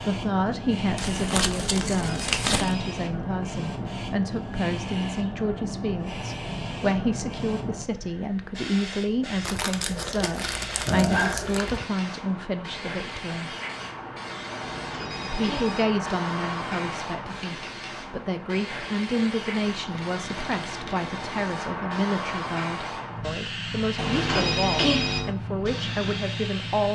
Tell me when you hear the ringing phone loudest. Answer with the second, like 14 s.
25 s.